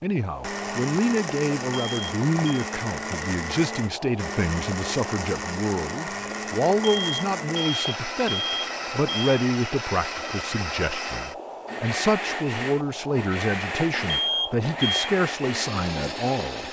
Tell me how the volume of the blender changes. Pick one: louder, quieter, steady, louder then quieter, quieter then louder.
steady.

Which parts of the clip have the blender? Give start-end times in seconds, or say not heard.
0.0-16.6.